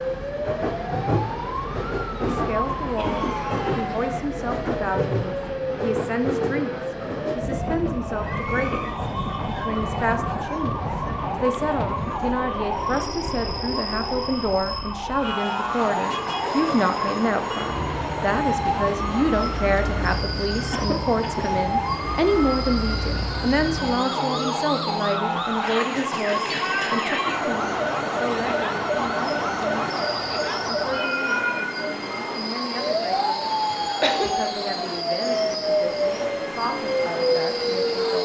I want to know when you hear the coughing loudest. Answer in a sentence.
The volume of the coughing peaks at 34 seconds.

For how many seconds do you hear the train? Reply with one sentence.
You can hear the train for 38 seconds altogether.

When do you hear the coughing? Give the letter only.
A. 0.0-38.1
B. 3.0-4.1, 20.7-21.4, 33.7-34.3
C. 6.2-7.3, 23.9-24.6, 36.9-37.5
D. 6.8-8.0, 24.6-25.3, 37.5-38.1
B.